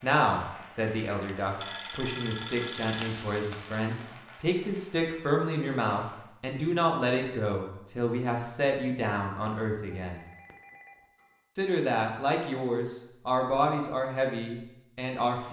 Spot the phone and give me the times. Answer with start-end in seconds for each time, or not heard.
1.2-3.1, 9.9-11.4.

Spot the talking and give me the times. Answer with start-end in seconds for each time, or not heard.
0.0-10.2, 11.6-15.4.